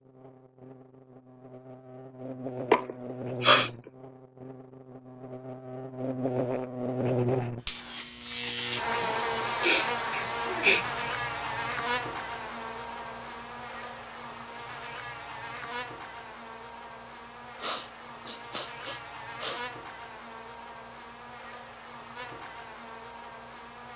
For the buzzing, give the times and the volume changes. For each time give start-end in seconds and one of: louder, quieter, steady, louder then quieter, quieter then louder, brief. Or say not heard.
0.0-23.9 louder then quieter.